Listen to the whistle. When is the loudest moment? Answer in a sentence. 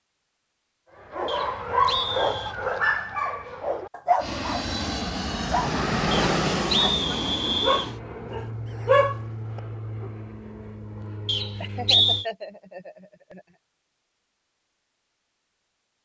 The loudest moment of the whistle is at 12 seconds.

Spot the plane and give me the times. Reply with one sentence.
The plane can be heard from 4.2 to 12.2 s.